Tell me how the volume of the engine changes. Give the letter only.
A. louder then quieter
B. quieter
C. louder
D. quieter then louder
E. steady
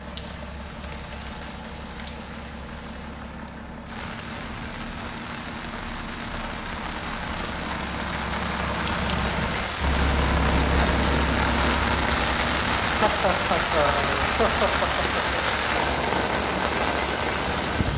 A.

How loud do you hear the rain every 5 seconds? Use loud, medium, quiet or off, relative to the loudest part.
quiet, medium, loud, loud.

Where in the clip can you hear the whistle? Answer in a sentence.
You can't hear the whistle here.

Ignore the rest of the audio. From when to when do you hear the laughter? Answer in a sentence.
The laughter can be heard from 12.9 to 15.4 s.